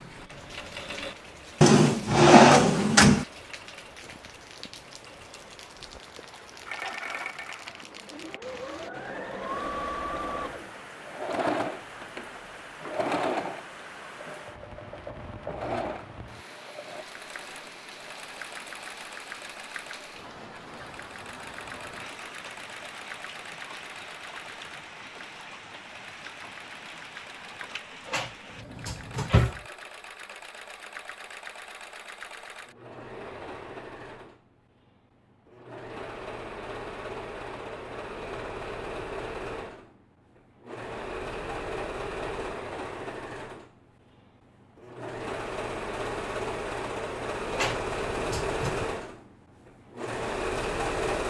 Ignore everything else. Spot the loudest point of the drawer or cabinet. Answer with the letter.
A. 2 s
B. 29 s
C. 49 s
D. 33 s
A.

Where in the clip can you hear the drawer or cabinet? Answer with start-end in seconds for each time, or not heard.
1.6-3.2, 28.1-29.6, 47.5-48.9.